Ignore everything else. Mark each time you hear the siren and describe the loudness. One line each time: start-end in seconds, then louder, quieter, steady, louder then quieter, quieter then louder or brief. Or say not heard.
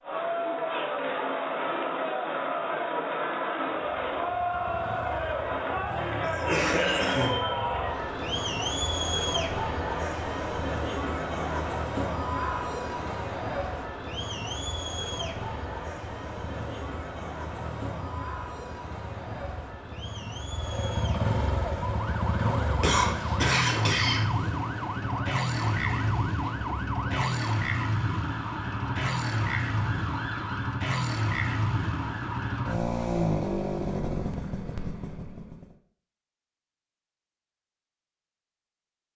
21.6-32.8 steady.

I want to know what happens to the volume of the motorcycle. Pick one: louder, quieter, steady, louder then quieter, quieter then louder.
louder.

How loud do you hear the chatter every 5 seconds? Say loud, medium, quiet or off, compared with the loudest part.
loud, loud, loud, medium, quiet, quiet, off, off.